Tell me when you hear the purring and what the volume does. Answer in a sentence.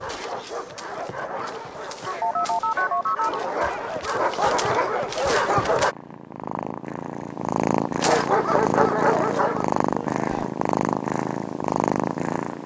The purring can be heard from 0.1 to 12.6 s, getting louder.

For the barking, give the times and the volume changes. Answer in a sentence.
The barking can be heard from 0.0 to 6.0 s, getting louder; and briefly from 8.0 to 10.5 s.